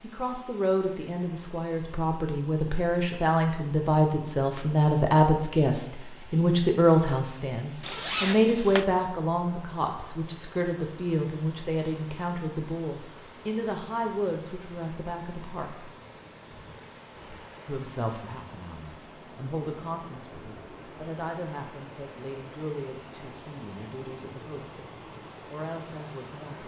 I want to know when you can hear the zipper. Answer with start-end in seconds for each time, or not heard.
7.8-8.8.